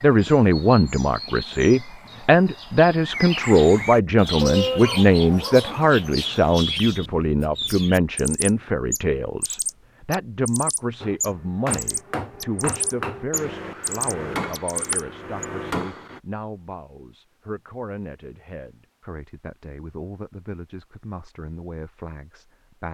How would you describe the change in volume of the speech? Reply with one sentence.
The volume of the speech goes down.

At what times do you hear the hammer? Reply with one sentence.
The hammer can be heard from 11.0 to 16.2 s.